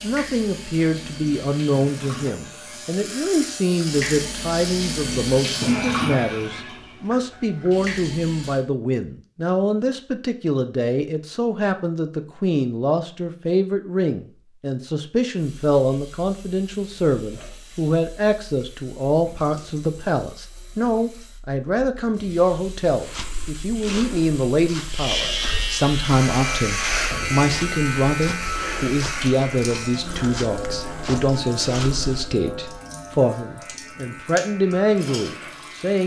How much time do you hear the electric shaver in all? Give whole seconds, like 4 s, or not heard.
18 s.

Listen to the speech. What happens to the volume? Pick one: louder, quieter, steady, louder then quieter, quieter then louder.
steady.